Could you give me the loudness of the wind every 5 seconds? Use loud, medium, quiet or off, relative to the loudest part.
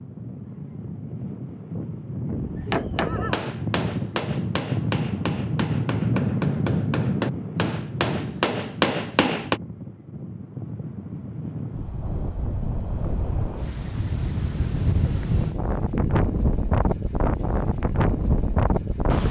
medium, loud, medium, loud.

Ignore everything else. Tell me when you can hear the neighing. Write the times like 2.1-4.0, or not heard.
2.3-3.4, 15.9-16.3.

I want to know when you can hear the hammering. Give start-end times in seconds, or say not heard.
2.7-9.6.